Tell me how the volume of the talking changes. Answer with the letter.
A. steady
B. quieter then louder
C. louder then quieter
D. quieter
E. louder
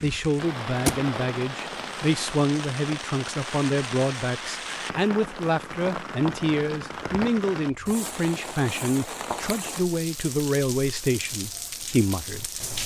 A.